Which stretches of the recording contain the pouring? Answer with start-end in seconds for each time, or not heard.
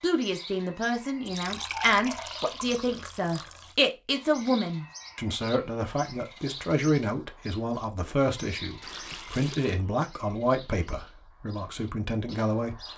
1.2-3.8, 8.8-9.8.